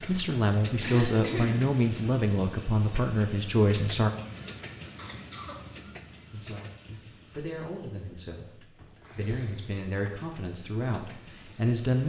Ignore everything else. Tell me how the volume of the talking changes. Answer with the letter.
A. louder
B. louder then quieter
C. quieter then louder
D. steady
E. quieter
C.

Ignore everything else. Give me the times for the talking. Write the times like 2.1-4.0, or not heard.
0.1-4.1, 6.3-12.0.